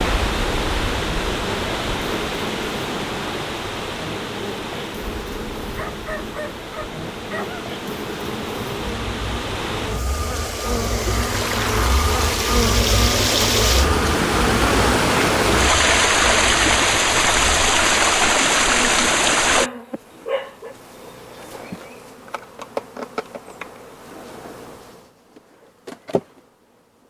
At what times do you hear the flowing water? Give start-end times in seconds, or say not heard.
0.0-19.7.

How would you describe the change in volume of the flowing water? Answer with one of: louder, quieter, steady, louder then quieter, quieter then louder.
quieter then louder.